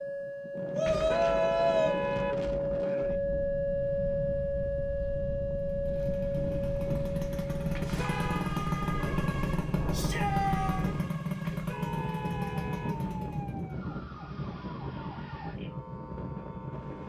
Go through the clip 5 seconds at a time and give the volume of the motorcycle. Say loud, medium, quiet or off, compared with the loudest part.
off, loud, loud, off.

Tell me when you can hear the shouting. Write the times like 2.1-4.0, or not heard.
0.7-1.9, 9.9-10.8.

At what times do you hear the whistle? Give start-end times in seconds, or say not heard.
not heard.